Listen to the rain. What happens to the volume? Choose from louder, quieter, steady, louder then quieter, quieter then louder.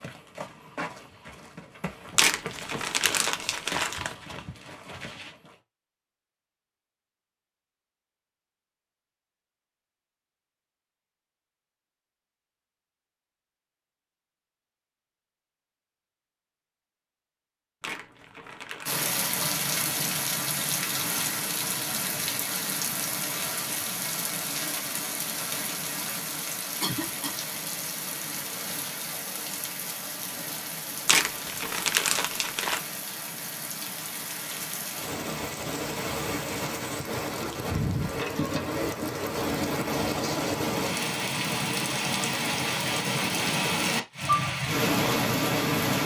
quieter then louder.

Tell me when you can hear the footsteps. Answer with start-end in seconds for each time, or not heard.
0.0-5.5.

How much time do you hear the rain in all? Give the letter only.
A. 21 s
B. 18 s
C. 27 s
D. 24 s
C.